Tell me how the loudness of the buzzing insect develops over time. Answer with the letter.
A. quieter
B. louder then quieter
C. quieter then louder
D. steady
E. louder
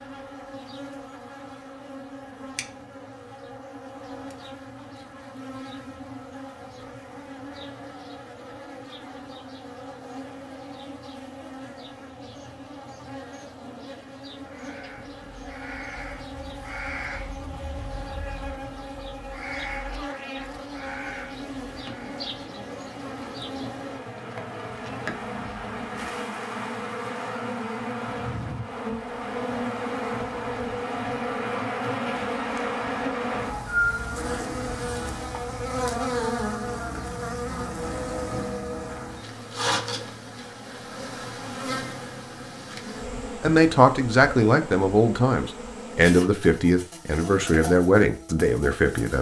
B.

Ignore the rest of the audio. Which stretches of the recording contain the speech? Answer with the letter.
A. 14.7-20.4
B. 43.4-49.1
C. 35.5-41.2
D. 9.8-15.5
B.